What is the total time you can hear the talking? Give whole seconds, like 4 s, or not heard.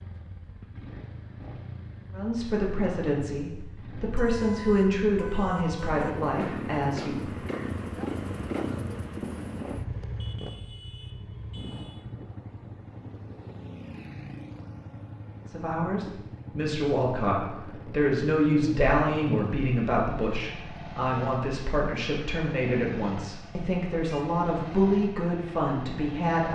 16 s.